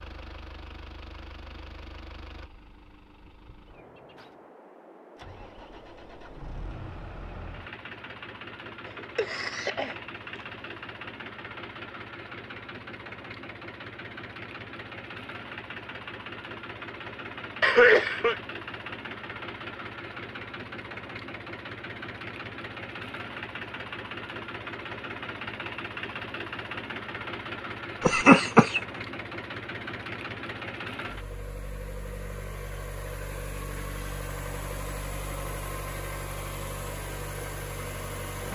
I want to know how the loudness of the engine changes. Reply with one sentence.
The loudness of the engine goes up.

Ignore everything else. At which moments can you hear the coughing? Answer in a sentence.
The coughing can be heard from 8.8 to 10.4 s, from 17.6 to 18.4 s and from 28.1 to 28.8 s.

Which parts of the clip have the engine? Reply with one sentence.
The engine can be heard from 0.0 to 38.4 s.